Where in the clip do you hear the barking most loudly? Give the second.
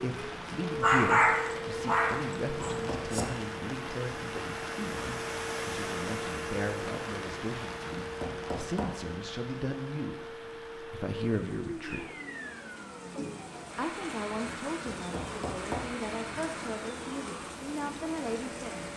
1 s.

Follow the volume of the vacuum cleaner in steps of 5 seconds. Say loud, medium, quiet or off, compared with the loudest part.
loud, loud, loud, medium.